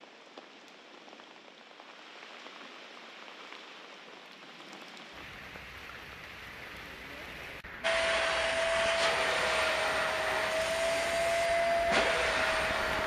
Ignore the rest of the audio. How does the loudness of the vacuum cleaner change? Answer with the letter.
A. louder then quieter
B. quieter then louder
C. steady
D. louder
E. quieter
C.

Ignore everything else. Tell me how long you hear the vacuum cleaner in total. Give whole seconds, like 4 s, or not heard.
5 s.